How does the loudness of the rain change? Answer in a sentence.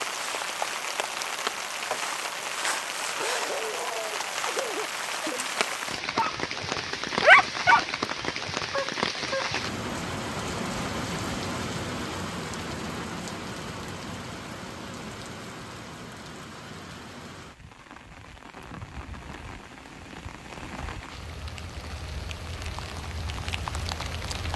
The loudness of the rain goes down.